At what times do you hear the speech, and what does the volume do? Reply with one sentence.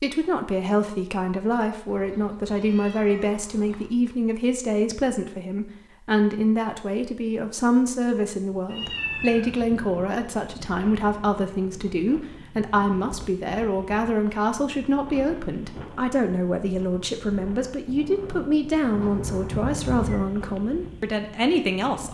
You can hear the speech from 0.0 to 22.0 s, at a steady volume.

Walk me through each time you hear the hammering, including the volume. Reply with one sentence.
The hammering can't be heard in this clip.